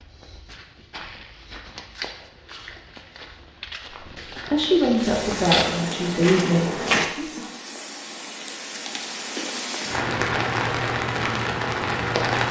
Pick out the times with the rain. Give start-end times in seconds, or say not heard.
5.0-12.4.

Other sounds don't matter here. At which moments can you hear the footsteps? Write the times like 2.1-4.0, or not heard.
0.0-7.1.